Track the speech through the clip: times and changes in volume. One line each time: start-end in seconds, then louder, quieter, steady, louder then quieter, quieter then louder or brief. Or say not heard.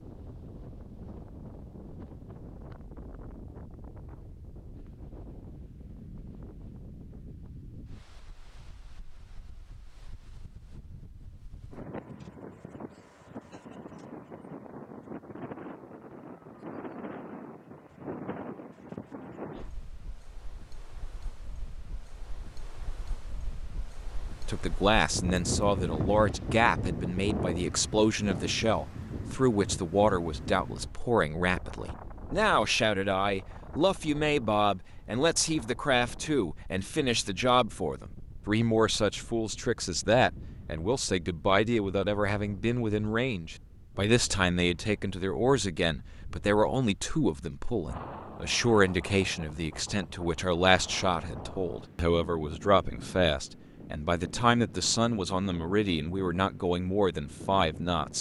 24.4-58.1 steady.